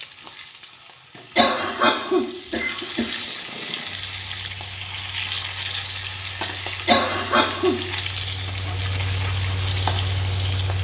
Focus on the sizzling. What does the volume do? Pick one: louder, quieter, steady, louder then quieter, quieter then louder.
louder.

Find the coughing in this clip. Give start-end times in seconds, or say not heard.
1.4-3.2, 6.8-7.8.